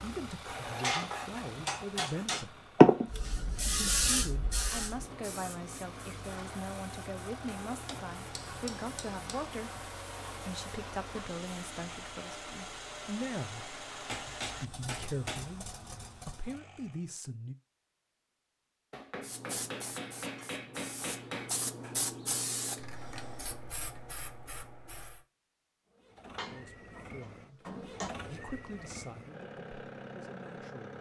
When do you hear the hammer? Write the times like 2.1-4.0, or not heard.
0.8-2.5, 7.7-9.8, 14.1-15.6, 18.9-21.5, 26.2-28.1.